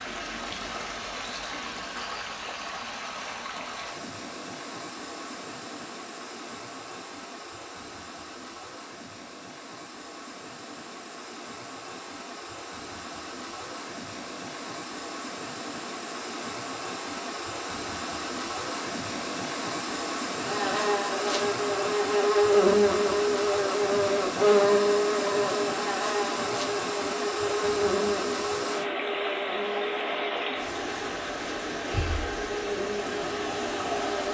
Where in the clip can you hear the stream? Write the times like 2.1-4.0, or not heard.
0.0-34.3.